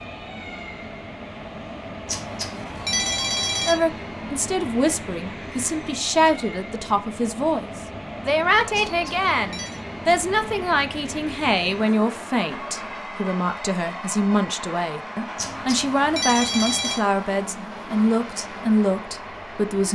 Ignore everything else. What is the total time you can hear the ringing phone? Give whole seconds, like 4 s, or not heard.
4 s.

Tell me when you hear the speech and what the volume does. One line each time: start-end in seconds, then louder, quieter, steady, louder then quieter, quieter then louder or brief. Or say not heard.
3.6-19.9 steady.